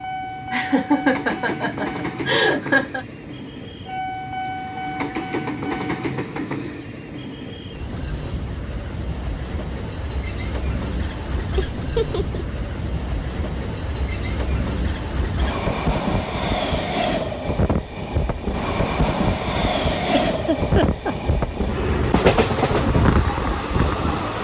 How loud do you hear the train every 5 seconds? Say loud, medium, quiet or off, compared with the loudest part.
medium, medium, medium, loud, loud.